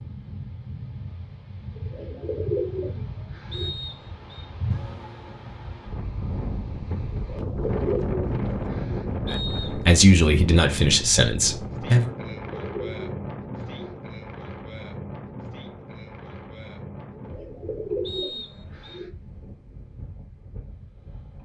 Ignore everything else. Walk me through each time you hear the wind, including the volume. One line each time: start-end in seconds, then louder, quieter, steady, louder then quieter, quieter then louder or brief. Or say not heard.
0.0-21.3 louder then quieter.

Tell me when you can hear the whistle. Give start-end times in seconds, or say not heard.
3.5-4.5, 9.2-9.8, 18.1-19.0.